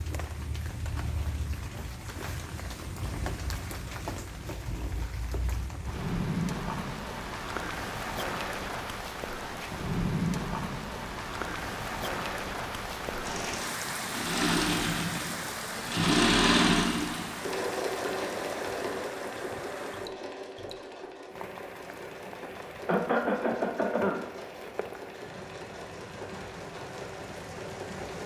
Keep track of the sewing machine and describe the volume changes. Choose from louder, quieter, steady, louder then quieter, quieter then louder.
quieter.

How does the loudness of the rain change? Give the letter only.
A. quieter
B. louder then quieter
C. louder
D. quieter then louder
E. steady
B.